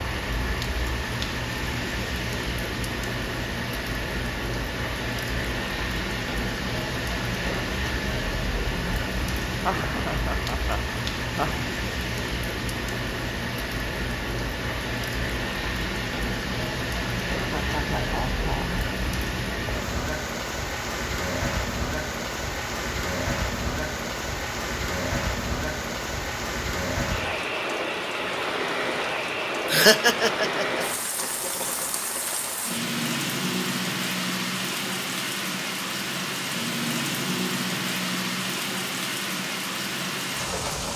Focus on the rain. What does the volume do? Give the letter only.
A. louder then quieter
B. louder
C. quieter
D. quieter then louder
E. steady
E.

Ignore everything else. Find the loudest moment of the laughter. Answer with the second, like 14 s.
30 s.